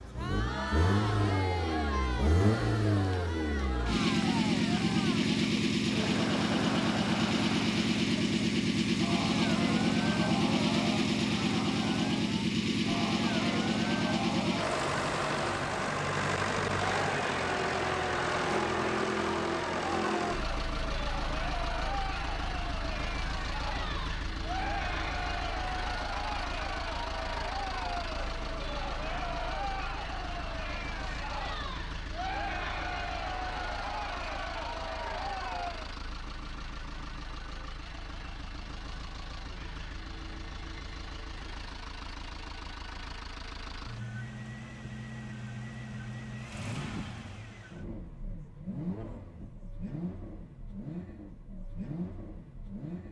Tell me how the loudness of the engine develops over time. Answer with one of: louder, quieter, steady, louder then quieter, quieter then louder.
quieter.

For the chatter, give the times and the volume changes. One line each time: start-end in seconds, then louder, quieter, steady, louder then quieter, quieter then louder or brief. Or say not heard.
0.0-36.0 steady.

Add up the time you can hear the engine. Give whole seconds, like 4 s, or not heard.
53 s.